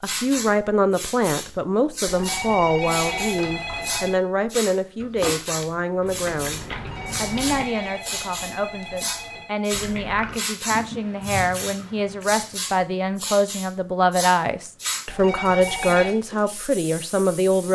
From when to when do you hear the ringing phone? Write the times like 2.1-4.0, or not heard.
2.0-4.2, 6.8-9.5, 15.1-16.1.